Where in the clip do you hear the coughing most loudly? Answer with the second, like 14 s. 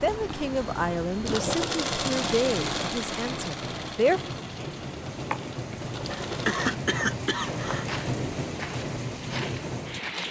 7 s.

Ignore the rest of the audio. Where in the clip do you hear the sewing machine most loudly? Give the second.
2 s.